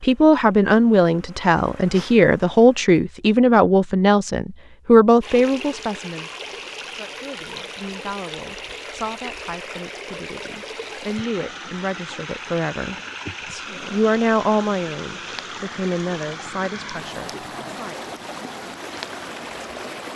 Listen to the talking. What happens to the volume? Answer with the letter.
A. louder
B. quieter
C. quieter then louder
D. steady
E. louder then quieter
C.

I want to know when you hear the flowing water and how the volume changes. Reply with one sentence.
You can hear the flowing water from 5.2 to 20.0 s, at a steady volume.